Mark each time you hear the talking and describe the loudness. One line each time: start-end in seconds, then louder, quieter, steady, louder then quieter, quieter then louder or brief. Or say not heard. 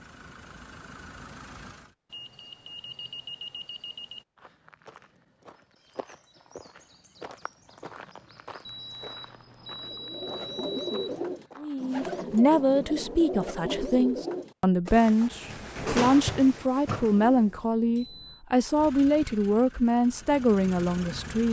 11.6-21.4 steady.